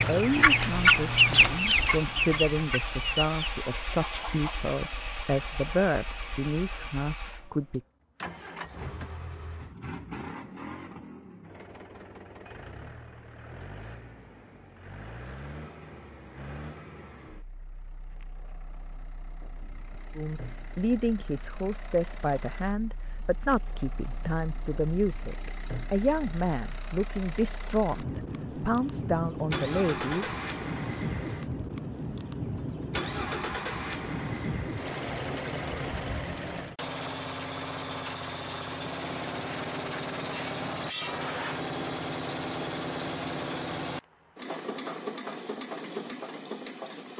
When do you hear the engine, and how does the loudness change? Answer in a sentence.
The engine can be heard from 0.0 to 47.1 s, getting quieter then louder.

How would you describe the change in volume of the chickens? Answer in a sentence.
The loudness of the chickens goes down.